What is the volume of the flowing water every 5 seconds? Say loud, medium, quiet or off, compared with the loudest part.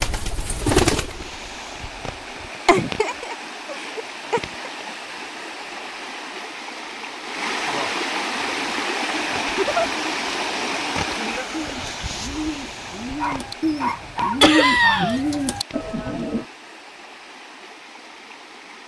medium, loud, loud, quiet.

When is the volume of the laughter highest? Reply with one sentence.
The volume of the laughter peaks at 15 seconds.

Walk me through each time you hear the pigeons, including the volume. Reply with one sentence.
The pigeons can be heard briefly from 0.0 to 1.6 s; and from 8.4 to 16.4 s, getting louder.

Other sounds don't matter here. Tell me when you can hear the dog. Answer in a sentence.
The dog can be heard from 13.2 to 15.1 s.